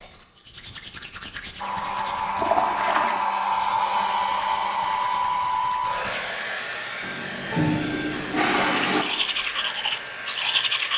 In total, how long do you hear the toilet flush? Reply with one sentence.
The toilet flush can be heard for 3 seconds in total.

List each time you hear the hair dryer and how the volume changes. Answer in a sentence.
The hair dryer can be heard from 1.6 to 10.9 s, getting quieter.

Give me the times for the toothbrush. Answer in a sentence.
The toothbrush can be heard from 0.0 to 6.3 s and from 8.7 to 10.9 s.